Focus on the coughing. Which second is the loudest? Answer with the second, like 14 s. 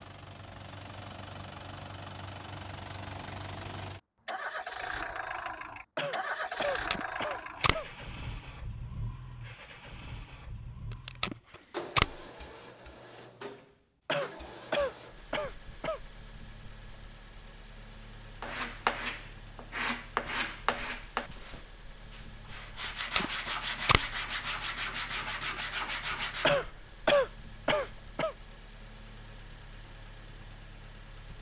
27 s.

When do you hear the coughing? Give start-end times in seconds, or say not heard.
6.0-7.8, 14.1-16.0, 26.4-28.4.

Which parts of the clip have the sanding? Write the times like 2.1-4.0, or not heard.
18.4-26.5.